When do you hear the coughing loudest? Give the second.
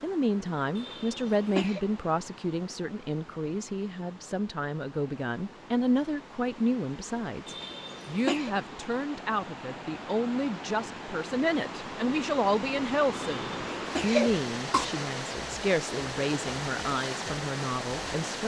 14 s.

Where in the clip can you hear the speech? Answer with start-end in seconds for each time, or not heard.
0.0-18.4.